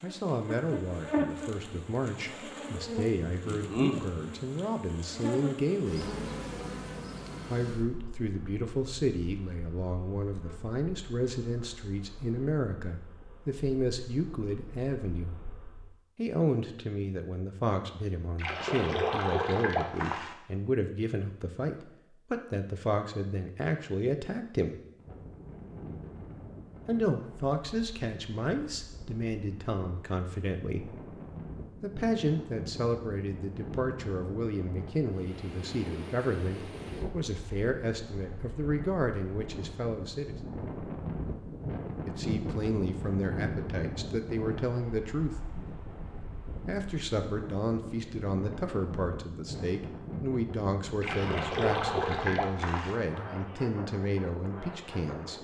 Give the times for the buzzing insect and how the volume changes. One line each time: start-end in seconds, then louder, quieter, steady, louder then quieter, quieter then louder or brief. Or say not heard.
0.0-15.9 quieter.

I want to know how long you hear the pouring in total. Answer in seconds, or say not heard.
4 s.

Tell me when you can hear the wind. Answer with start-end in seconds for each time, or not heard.
24.9-55.3.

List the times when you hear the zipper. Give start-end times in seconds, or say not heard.
not heard.